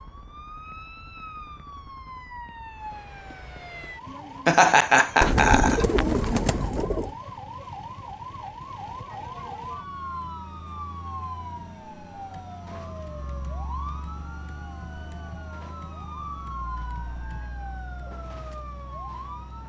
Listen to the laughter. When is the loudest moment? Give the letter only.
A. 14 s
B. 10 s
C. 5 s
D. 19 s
C.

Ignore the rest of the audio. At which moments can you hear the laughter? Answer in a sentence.
The laughter can be heard from 4.5 to 6.0 s.